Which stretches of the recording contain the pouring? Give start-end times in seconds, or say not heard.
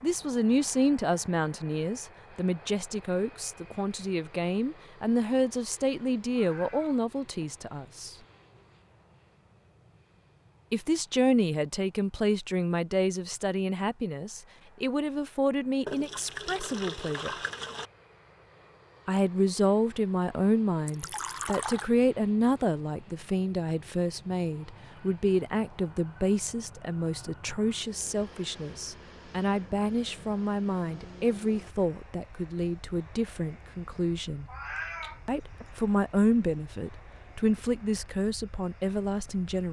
15.8-17.9, 20.9-21.9.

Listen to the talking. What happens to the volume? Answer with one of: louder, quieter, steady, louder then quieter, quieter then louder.
steady.